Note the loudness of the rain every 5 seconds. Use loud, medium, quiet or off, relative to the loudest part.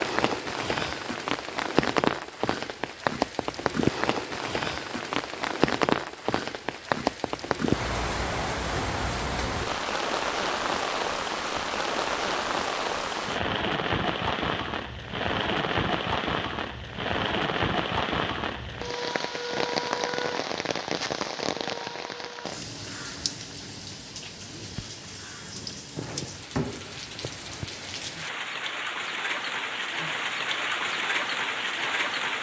loud, loud, loud, loud, medium, medium, loud.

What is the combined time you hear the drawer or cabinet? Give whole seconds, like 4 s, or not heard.
2 s.